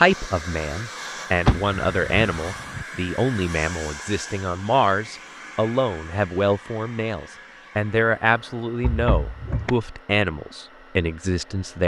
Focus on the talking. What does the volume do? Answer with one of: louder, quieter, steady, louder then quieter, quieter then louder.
steady.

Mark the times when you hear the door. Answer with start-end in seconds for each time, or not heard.
1.4-2.9, 8.8-9.7.